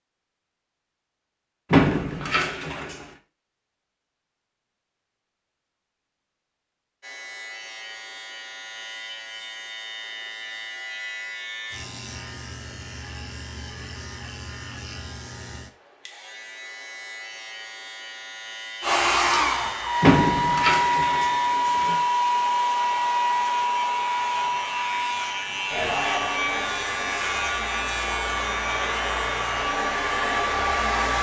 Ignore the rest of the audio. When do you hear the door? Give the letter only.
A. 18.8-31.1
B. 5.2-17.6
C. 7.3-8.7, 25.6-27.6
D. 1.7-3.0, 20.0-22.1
D.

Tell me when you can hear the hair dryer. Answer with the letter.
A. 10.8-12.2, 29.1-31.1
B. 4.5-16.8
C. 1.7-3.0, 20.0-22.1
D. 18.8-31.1
D.